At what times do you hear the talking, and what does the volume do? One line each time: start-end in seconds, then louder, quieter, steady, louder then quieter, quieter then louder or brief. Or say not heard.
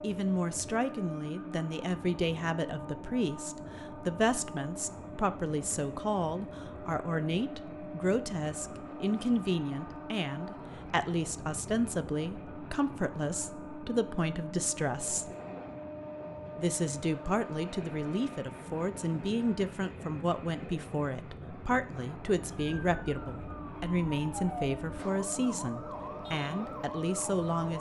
0.0-15.3 steady
16.6-27.7 steady.